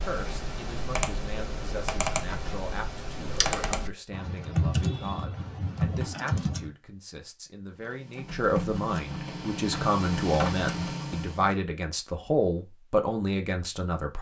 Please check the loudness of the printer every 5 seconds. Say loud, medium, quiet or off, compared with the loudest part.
off, loud, loud.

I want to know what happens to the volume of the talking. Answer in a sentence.
The volume of the talking goes up.